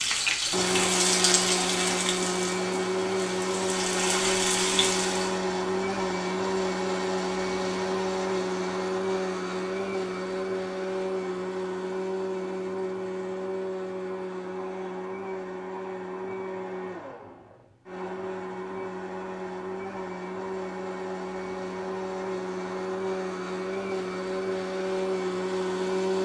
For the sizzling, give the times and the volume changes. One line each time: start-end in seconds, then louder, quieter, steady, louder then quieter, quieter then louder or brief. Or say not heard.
0.0-5.4 quieter then louder.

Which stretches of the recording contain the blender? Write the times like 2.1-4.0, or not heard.
0.0-26.2.